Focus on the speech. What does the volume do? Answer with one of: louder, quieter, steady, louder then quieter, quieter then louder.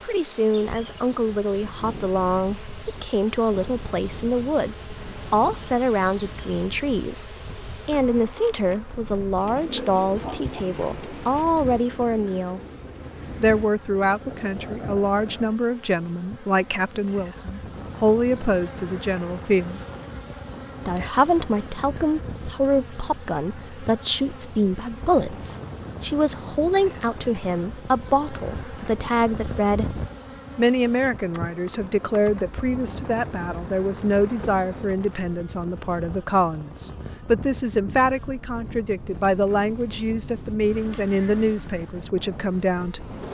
steady.